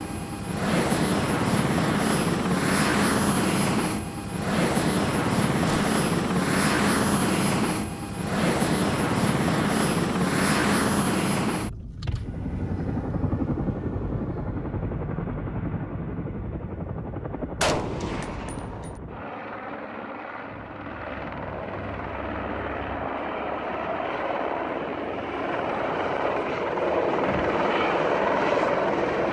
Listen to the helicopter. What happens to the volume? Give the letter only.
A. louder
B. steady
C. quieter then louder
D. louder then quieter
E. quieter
C.